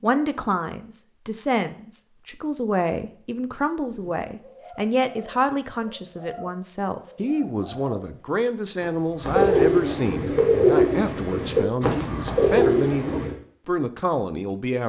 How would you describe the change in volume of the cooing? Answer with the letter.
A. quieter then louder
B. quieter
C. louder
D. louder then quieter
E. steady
C.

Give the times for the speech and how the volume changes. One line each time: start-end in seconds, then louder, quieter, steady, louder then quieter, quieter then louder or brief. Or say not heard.
0.0-14.8 steady.